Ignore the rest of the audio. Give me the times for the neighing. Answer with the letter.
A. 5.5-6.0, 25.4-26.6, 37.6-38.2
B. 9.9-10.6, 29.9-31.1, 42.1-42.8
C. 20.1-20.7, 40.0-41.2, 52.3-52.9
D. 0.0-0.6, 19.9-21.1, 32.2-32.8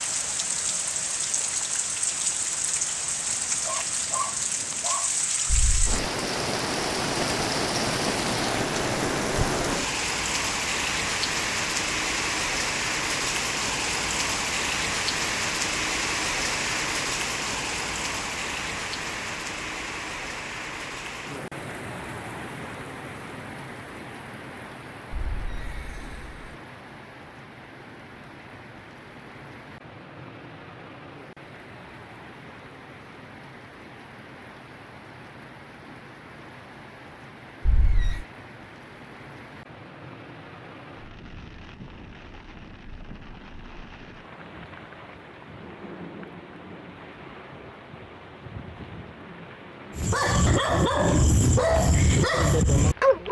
A.